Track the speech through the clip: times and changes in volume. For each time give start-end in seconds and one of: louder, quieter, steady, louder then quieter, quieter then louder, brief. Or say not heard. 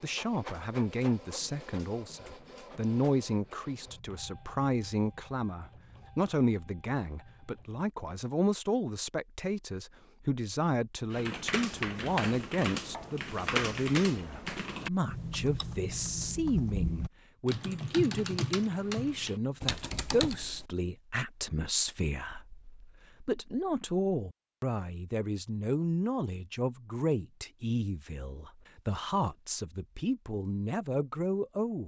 0.0-31.8 steady.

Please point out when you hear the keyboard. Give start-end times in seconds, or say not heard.
11.1-20.7.